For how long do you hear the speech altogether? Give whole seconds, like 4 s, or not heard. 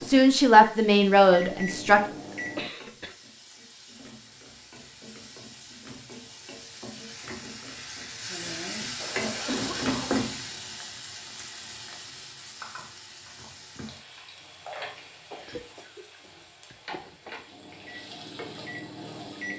2 s.